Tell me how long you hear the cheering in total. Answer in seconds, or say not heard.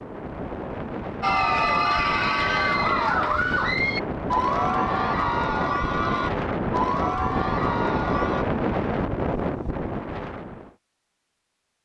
7 s.